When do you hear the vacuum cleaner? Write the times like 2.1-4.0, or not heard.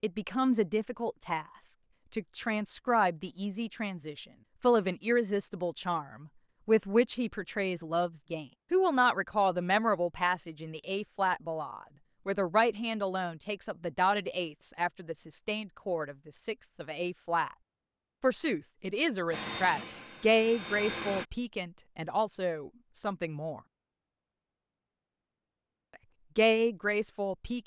19.3-21.2.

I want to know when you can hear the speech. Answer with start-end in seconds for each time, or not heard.
0.0-17.6, 18.2-23.6, 26.4-27.6.